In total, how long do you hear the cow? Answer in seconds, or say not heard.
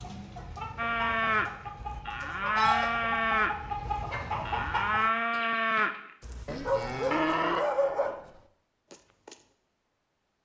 9 s.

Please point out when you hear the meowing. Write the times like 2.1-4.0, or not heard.
not heard.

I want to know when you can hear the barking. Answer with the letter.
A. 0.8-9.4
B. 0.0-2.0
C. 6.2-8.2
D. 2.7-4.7
C.